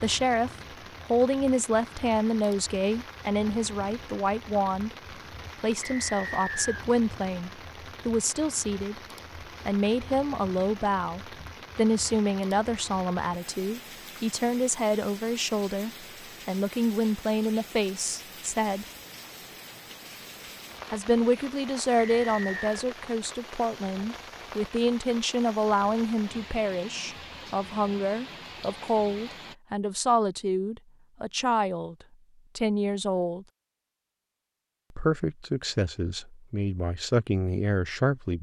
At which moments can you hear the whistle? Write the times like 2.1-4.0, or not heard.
5.8-6.8, 22.0-22.6.